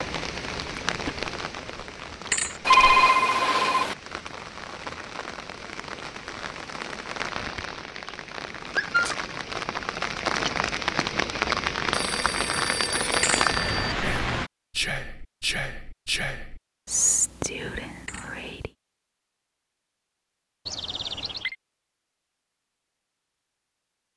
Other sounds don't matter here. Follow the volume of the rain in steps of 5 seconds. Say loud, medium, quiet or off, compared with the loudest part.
medium, medium, loud, off, off.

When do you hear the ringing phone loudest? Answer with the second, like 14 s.
3 s.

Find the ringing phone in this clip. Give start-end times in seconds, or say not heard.
2.6-4.0, 11.9-13.9, 20.6-21.6.